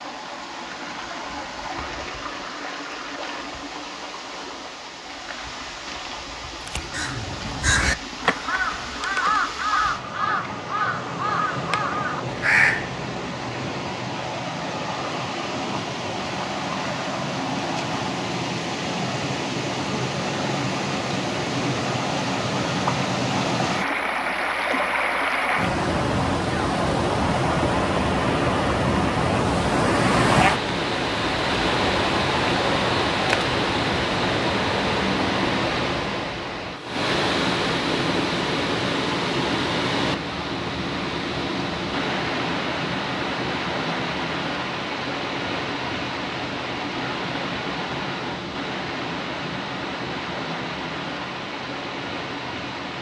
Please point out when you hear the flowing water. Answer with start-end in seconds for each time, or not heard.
0.0-52.9.